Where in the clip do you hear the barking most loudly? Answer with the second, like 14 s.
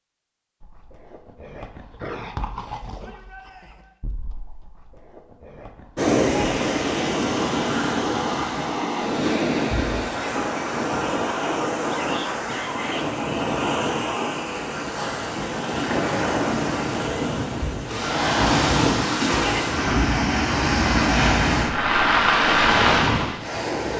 2 s.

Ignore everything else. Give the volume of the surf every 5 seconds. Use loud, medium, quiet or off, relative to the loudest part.
off, loud, medium, loud, loud.